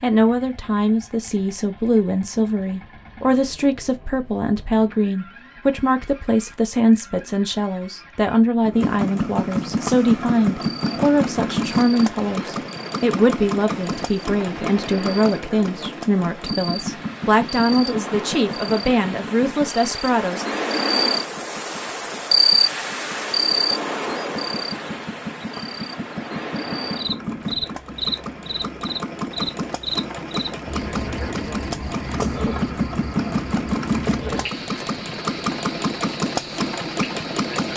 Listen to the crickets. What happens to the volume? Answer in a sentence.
The volume of the crickets goes up, then down.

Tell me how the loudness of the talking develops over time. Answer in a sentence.
The volume of the talking stays about the same.